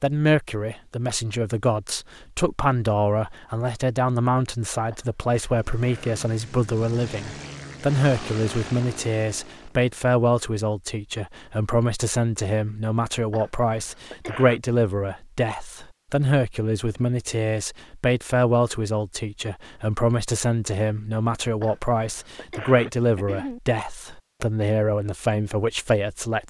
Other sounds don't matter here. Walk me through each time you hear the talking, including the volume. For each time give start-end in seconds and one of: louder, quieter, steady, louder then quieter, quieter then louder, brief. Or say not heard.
0.0-26.4 steady.